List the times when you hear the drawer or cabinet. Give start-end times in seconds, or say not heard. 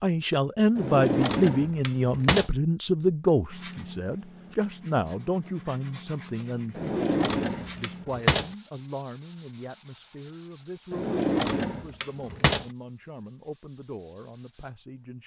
0.8-2.5, 6.8-8.5, 10.9-12.7.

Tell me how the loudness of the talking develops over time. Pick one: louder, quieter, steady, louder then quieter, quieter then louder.
quieter.